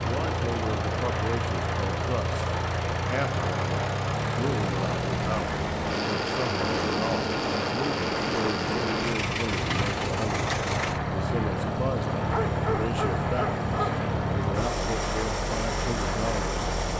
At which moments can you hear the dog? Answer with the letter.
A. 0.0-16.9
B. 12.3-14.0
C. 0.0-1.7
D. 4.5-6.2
B.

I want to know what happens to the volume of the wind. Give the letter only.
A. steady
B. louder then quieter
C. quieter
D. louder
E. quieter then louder
A.